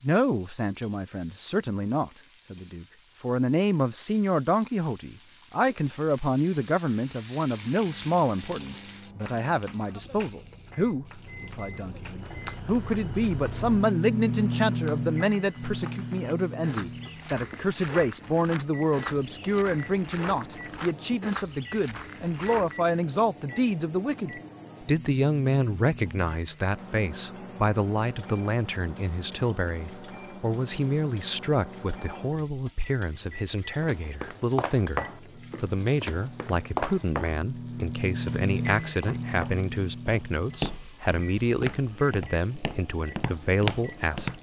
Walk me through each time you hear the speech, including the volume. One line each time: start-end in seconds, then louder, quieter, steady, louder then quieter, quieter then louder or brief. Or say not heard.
0.0-44.3 steady.